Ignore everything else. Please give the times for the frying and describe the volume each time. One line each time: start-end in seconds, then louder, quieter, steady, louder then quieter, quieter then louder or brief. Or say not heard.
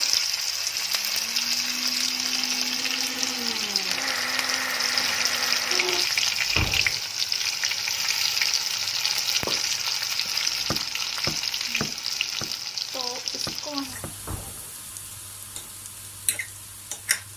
0.0-17.3 quieter.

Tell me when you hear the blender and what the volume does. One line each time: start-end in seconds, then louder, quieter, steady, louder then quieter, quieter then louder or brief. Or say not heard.
0.0-6.0 louder.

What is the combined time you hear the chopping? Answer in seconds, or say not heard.
5 s.